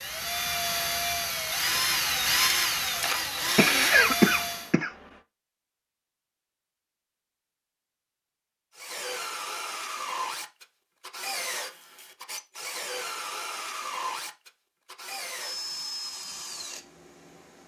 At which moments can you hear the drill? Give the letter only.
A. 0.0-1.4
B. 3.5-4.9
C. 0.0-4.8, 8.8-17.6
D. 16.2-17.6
C.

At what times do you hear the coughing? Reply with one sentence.
You can hear the coughing from 3.5 to 4.9 s.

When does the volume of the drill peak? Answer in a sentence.
The volume of the drill peaks at 2 seconds.